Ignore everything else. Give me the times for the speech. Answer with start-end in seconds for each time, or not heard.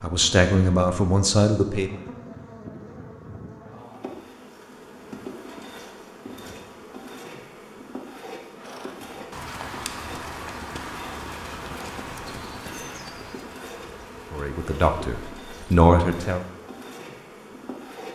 0.0-2.0, 14.3-16.4.